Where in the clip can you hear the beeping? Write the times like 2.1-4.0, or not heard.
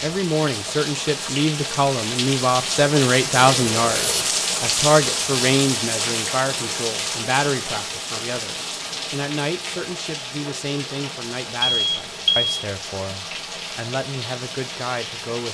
3.5-4.2, 11.6-12.6.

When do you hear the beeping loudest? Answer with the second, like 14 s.
12 s.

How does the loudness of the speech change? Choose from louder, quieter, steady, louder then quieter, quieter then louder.
quieter.